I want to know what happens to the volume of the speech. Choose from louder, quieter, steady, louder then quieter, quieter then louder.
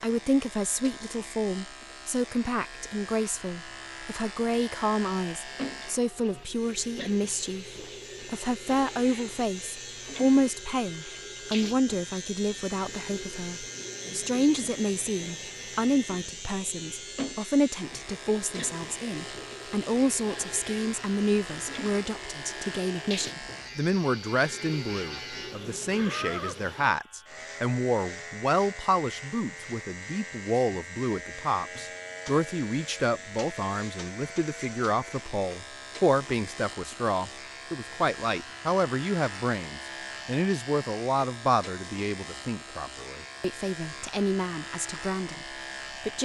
steady.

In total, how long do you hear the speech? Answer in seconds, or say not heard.
46 s.